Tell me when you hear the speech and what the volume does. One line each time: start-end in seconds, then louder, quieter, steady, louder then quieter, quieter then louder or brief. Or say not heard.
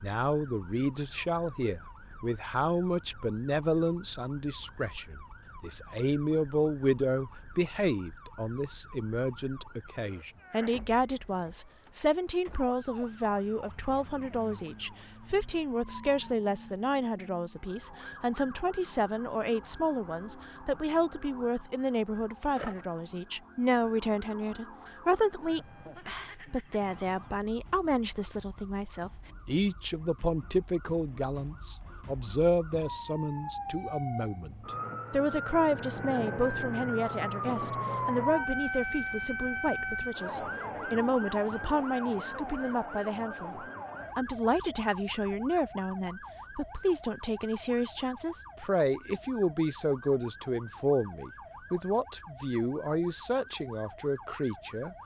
0.0-54.9 steady.